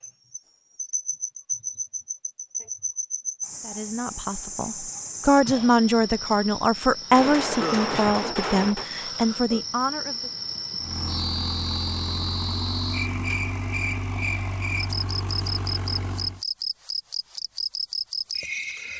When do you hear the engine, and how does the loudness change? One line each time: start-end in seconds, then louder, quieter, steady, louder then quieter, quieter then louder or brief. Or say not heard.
10.8-16.4 steady.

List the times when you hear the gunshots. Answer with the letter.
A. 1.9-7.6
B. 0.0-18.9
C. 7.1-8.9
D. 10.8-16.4
C.